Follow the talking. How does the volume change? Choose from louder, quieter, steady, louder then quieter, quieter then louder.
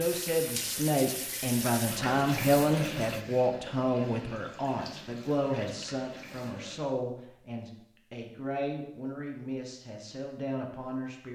quieter.